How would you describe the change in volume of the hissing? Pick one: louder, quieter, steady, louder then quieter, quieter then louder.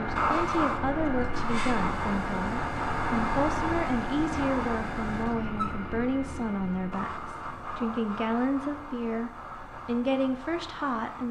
quieter.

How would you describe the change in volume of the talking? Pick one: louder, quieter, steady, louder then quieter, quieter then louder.
steady.